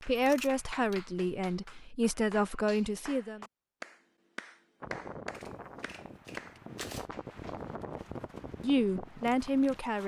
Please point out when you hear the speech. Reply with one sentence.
The speech can be heard from 0.0 to 3.5 s and from 8.6 to 10.0 s.